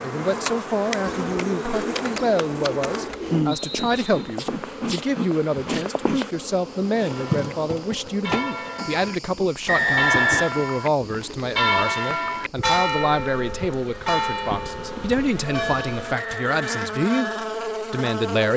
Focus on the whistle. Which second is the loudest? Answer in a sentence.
The loudest moment of the whistle is at 10 seconds.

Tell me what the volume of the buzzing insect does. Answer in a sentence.
The loudness of the buzzing insect goes down, then up.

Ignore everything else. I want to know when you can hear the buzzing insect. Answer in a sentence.
The buzzing insect can be heard from 0.0 to 18.5 s.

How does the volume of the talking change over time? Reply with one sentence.
The volume of the talking stays about the same.